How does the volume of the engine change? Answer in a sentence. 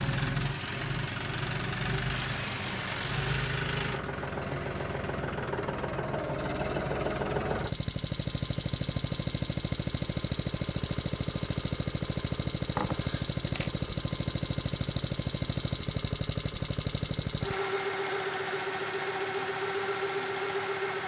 The volume of the engine stays about the same.